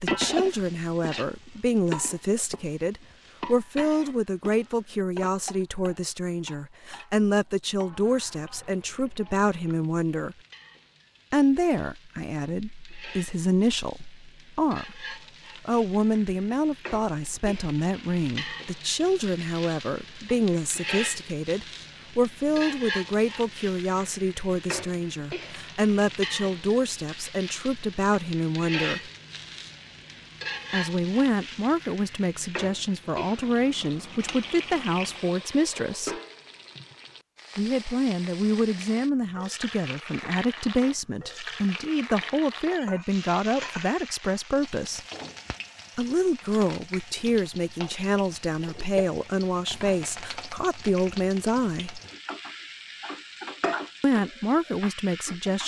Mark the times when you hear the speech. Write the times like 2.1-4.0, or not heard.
0.0-10.3, 11.3-29.1, 30.7-36.2, 37.5-45.0, 46.0-52.0, 54.0-55.6.